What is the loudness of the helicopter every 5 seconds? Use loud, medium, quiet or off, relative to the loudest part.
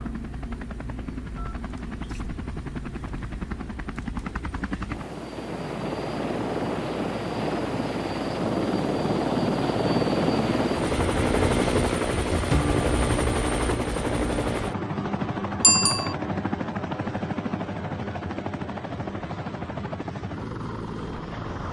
medium, loud, loud, medium, medium.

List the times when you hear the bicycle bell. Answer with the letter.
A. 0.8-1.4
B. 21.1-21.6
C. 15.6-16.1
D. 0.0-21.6
C.